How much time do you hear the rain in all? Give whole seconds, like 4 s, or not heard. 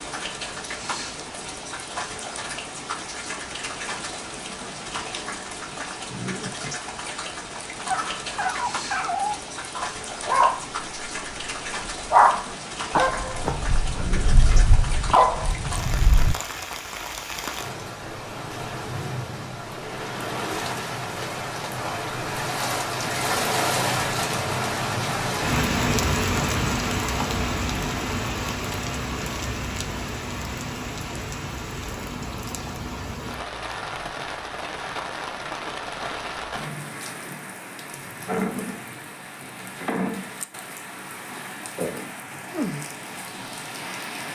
44 s.